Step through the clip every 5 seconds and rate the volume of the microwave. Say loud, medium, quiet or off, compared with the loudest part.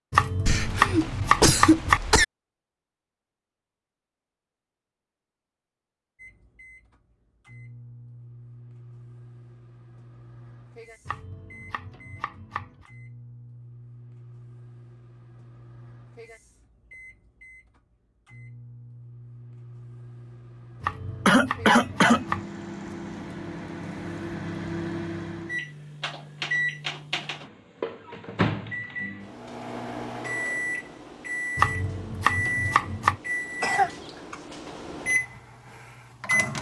off, quiet, quiet, quiet, medium, loud, loud, loud.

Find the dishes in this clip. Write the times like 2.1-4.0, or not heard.
not heard.